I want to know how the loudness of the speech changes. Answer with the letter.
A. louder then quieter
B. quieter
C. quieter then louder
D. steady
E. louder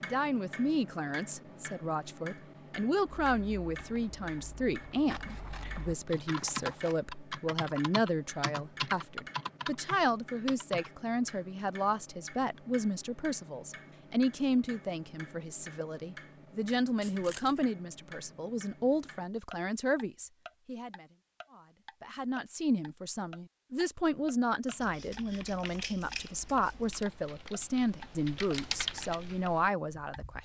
D.